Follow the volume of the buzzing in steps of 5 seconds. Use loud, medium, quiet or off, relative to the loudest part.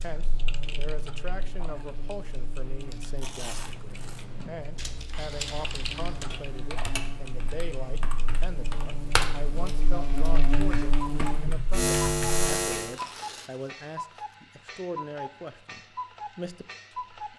quiet, quiet, loud, off.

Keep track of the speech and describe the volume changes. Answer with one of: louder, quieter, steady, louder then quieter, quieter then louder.
steady.